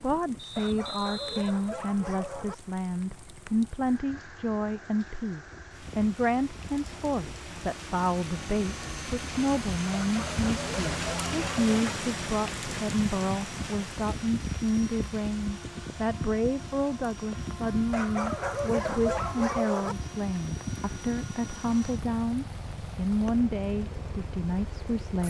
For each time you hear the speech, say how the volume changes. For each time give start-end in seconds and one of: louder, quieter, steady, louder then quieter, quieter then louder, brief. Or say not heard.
0.0-25.2 steady.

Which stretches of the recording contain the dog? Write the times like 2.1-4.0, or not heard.
0.6-2.5, 9.9-11.8, 17.9-19.9.